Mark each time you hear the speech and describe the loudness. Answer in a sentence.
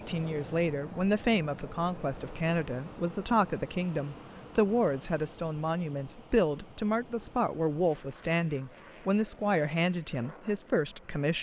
The speech can be heard from 0.0 to 11.3 s, at a steady volume.